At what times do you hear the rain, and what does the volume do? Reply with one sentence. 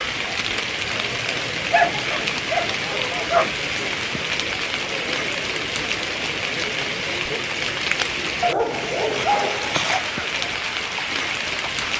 You can hear the rain from 0.0 to 11.9 s, at a steady volume.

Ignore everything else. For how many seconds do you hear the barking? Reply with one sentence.
The barking can be heard for 3 seconds in total.